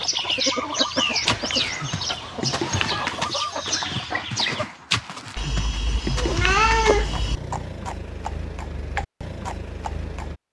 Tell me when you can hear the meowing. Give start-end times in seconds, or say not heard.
1.2-3.2, 5.3-7.4.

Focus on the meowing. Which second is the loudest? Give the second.
7 s.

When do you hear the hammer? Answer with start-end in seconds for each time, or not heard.
not heard.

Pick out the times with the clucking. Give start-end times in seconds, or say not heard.
0.0-4.7.